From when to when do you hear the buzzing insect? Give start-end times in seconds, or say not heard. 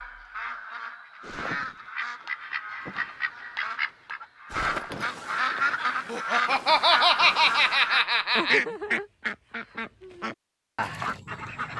not heard.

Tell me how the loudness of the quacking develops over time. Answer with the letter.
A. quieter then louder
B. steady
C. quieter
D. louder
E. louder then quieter
E.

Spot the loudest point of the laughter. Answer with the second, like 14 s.
7 s.